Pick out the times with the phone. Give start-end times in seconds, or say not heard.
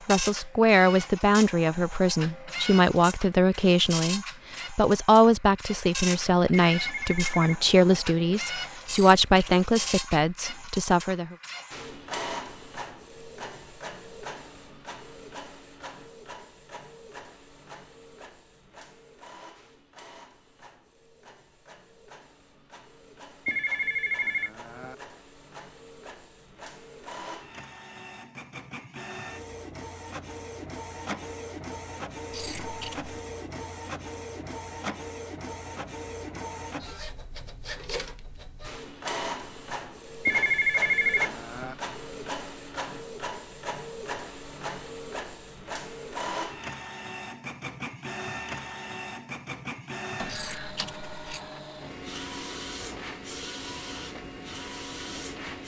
6.7-8.1, 23.4-24.9, 40.2-41.8.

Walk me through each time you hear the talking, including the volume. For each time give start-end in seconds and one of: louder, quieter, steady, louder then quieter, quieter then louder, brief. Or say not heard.
0.1-11.3 steady.